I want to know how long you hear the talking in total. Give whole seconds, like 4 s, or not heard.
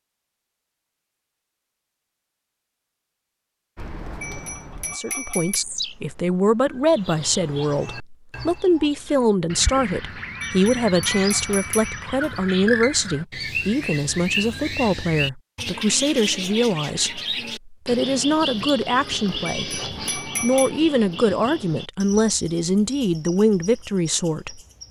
20 s.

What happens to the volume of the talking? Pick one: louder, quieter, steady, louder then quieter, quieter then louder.
steady.